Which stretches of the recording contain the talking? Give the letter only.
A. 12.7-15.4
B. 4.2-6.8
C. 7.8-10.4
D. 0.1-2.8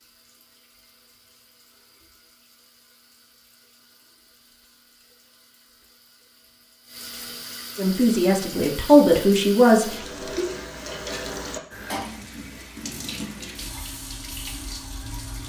C.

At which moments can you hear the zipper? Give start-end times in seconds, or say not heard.
not heard.